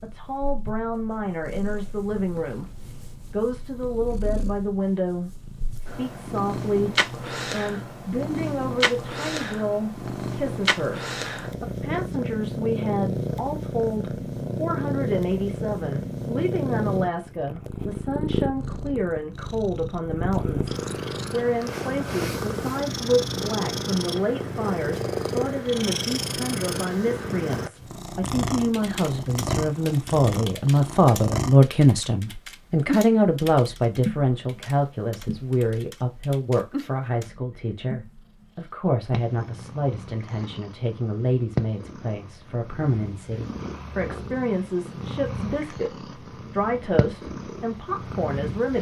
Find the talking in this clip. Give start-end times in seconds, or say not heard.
0.0-48.7.